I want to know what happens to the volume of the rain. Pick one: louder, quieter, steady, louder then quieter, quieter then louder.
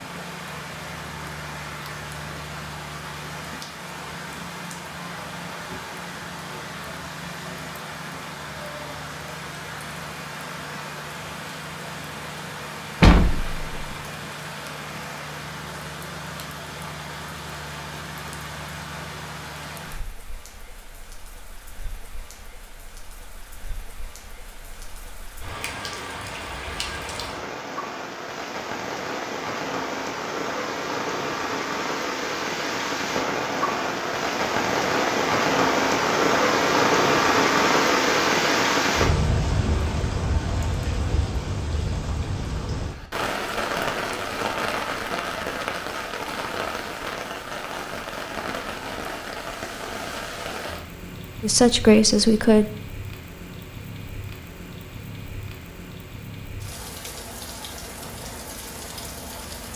louder then quieter.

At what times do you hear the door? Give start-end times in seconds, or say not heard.
13.0-13.9.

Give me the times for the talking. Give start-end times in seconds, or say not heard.
51.4-52.6.